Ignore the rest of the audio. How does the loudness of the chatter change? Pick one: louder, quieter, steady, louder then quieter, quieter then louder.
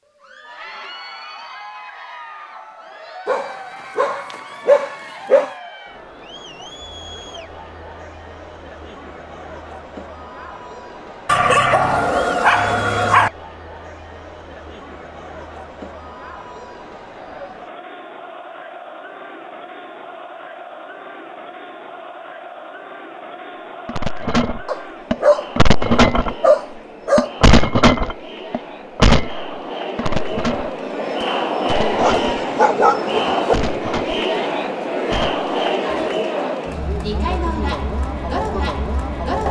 louder.